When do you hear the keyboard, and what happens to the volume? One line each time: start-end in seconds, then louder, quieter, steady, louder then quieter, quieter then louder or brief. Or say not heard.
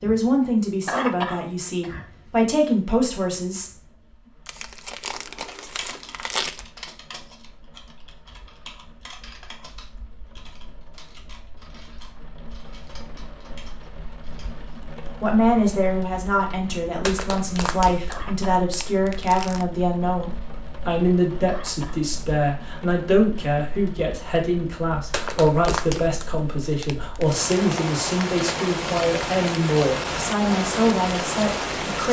5.3-14.6 quieter.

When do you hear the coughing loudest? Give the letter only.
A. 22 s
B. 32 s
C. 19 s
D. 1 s
D.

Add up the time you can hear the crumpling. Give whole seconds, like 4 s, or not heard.
7 s.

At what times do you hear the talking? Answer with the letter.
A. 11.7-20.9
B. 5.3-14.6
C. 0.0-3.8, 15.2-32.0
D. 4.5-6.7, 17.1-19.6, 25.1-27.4
C.